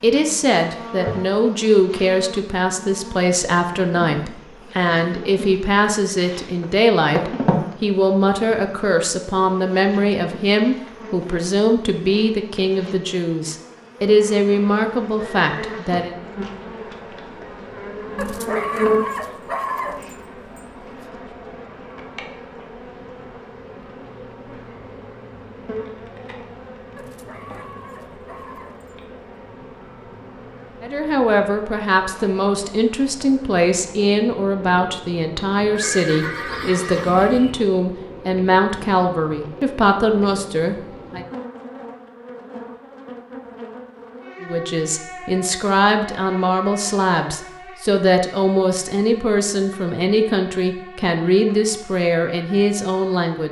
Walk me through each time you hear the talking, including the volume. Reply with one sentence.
You can hear the talking from 0.0 to 16.1 s, at a steady volume; from 30.8 to 41.2 s, at a steady volume; and from 44.4 to 53.4 s, at a steady volume.